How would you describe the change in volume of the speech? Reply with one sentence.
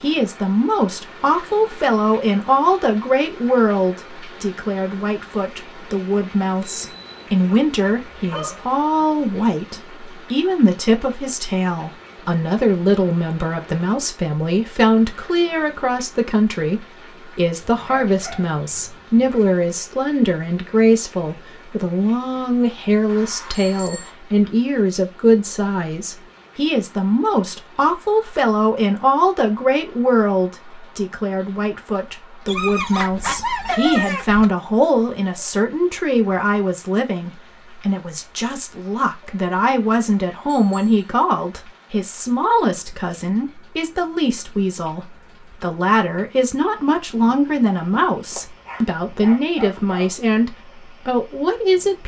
The loudness of the speech stays about the same.